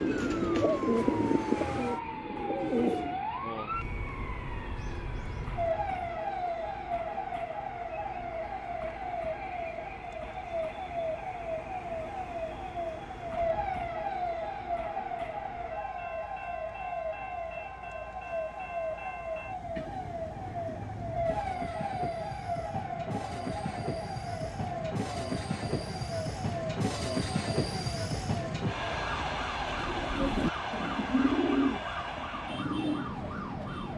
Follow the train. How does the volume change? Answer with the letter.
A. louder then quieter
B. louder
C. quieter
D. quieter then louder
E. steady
B.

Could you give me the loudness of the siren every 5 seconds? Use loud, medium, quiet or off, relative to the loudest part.
loud, loud, loud, loud, loud, medium, medium.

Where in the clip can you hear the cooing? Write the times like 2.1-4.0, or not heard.
0.0-3.1, 29.6-33.9.